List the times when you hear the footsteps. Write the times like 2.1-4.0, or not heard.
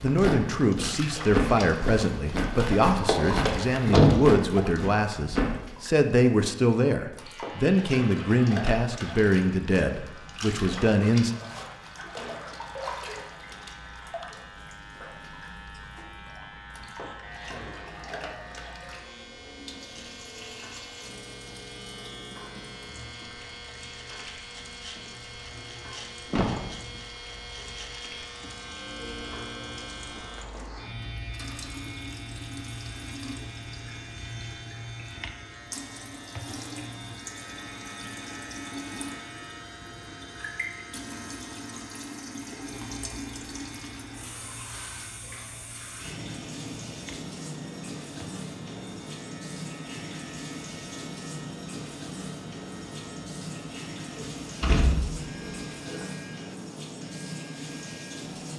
0.0-5.5.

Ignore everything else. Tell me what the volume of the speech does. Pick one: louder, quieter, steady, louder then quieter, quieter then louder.
steady.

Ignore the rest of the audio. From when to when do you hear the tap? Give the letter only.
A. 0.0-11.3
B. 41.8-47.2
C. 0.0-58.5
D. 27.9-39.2
C.